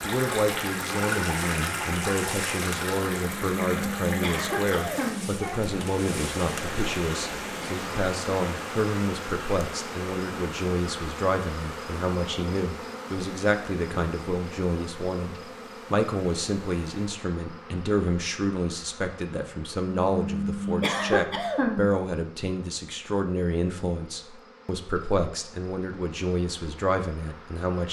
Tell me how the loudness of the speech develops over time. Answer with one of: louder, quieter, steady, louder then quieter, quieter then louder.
steady.